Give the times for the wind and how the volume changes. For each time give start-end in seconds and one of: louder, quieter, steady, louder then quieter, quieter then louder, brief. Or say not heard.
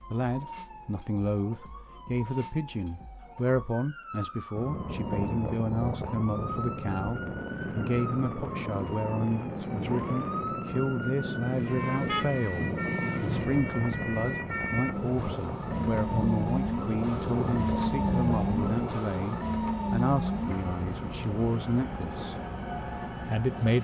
4.5-23.7 quieter.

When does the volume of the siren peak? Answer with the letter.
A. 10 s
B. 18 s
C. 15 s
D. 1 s
B.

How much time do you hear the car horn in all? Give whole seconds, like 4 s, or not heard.
2 s.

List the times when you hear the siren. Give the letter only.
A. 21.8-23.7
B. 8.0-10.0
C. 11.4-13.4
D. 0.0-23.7
D.